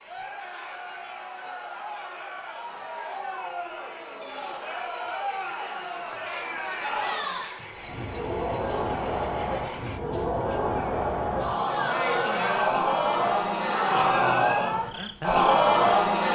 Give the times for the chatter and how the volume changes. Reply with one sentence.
The chatter can be heard from 0.0 to 16.2 s, getting louder.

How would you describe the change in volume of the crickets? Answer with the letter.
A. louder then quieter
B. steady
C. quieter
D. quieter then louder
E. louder
E.